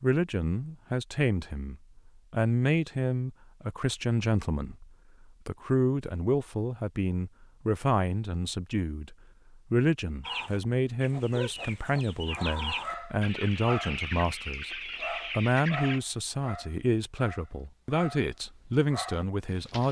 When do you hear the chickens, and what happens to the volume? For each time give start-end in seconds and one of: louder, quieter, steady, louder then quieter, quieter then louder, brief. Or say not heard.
10.2-16.0 steady.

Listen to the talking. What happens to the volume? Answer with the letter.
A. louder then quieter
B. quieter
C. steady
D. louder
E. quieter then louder
C.